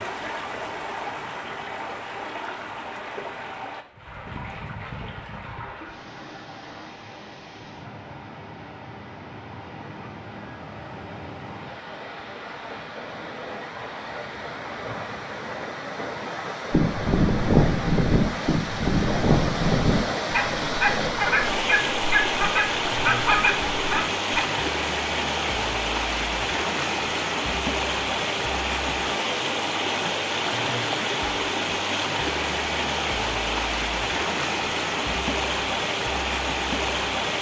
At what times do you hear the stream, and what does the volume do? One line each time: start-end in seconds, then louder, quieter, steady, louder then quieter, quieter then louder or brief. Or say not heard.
0.0-37.3 louder.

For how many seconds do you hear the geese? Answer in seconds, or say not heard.
8 s.